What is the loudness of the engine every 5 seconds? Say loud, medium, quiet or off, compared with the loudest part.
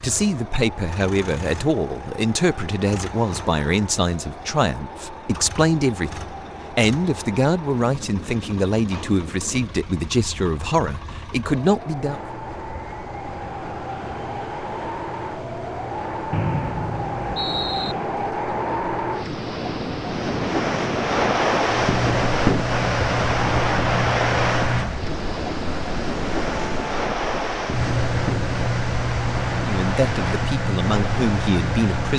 quiet, quiet, quiet, quiet, loud, loud, loud.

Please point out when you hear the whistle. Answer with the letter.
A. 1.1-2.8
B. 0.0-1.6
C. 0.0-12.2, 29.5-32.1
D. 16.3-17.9
D.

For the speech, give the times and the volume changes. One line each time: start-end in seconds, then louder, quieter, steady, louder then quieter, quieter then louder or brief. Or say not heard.
0.0-12.2 steady
29.5-32.1 brief.